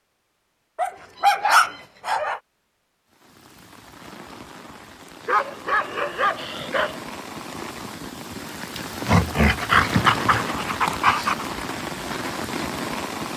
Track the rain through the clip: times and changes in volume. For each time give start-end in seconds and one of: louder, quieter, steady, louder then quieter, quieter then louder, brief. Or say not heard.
3.1-13.3 louder.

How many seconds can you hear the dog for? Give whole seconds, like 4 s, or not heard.
6 s.